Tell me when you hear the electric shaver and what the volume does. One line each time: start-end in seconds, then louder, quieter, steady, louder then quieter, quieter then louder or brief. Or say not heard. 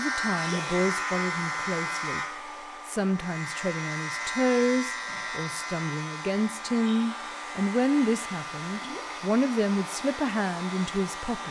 0.0-11.4 quieter.